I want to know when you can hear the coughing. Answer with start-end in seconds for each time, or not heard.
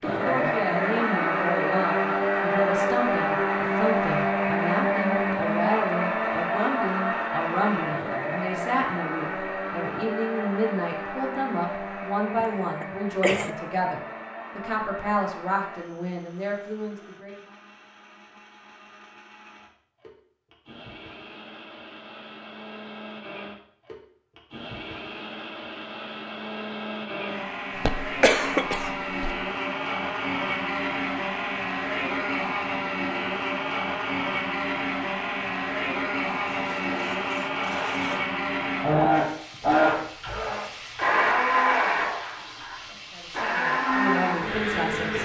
12.4-13.6, 27.8-29.4.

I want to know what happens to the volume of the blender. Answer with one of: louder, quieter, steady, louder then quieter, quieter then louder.
quieter then louder.